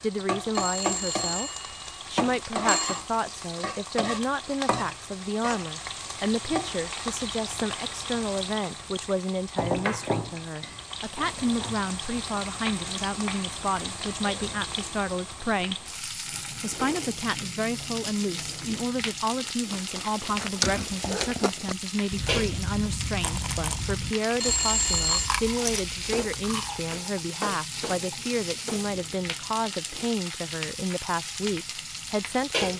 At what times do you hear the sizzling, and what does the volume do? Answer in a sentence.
You can hear the sizzling from 0.0 to 32.7 s, at a steady volume.